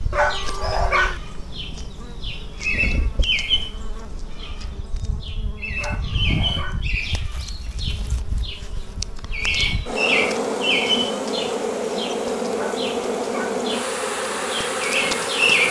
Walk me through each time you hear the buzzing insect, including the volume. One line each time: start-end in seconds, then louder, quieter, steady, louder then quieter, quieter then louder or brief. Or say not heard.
0.0-15.6 louder.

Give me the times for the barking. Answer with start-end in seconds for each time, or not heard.
0.1-1.2, 5.8-6.8, 12.5-13.6.